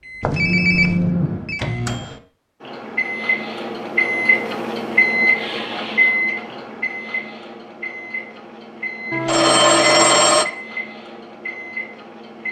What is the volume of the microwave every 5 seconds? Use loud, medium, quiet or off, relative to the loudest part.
loud, loud, medium.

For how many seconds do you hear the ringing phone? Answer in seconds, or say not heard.
3 s.